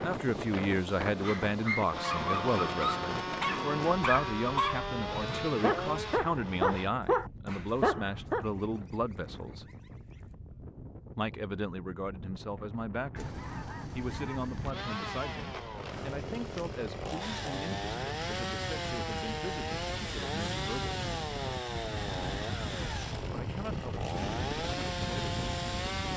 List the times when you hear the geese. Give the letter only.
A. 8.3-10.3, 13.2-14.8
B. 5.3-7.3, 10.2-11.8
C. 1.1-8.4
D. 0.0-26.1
A.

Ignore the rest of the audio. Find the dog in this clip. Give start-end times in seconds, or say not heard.
1.1-8.4.